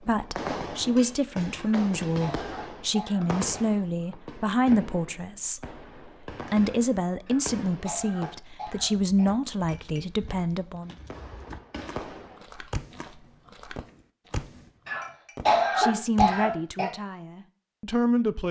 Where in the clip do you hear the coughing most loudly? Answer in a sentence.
The loudest moment of the coughing is at 16 seconds.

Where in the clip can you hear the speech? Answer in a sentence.
You can hear the speech from 0.1 to 5.6 s, from 6.5 to 10.9 s and from 15.8 to 18.4 s.